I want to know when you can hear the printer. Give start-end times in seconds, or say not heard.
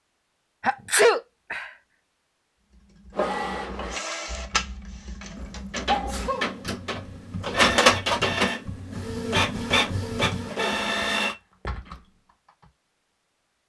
3.1-11.3.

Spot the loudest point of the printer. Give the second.
8 s.